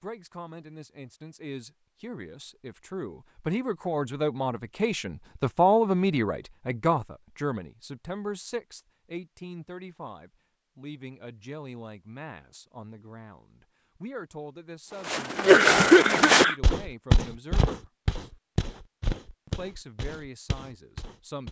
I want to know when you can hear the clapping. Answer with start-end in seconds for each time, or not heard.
not heard.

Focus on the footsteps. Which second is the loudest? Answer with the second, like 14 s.
16 s.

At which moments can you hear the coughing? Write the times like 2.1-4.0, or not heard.
15.3-16.6.